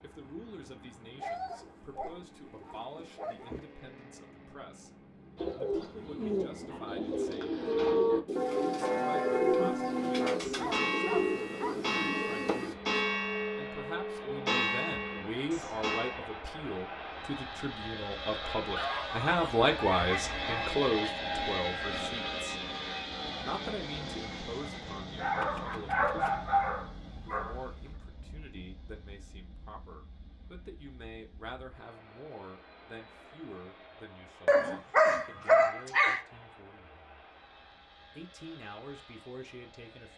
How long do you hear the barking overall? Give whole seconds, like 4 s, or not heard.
10 s.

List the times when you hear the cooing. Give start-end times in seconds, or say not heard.
5.3-12.8.